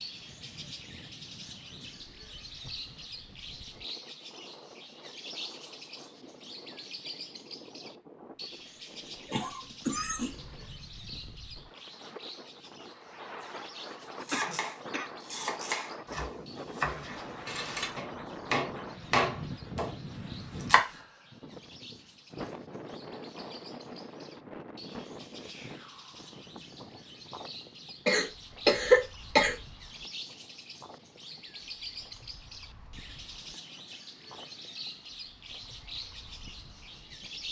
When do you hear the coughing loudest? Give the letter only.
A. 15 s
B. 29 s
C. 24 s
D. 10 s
B.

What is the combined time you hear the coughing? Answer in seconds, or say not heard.
4 s.